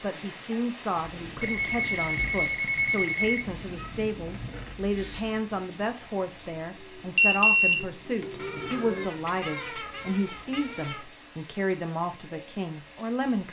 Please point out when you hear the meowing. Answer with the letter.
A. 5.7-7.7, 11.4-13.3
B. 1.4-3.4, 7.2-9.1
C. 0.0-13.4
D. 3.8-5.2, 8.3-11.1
D.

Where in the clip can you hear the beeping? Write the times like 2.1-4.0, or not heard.
1.4-3.4, 7.2-9.1.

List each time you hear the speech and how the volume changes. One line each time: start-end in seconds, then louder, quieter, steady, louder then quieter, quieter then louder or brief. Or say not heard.
0.0-13.4 steady.